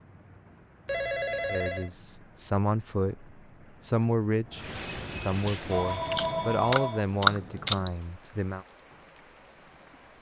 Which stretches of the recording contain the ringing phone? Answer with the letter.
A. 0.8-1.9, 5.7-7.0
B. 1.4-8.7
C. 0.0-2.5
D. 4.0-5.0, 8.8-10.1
A.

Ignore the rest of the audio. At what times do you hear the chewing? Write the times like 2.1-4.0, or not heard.
5.5-7.9.